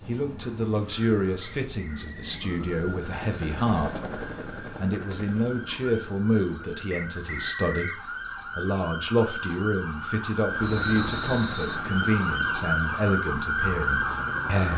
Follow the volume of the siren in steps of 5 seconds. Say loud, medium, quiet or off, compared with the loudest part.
quiet, medium, loud.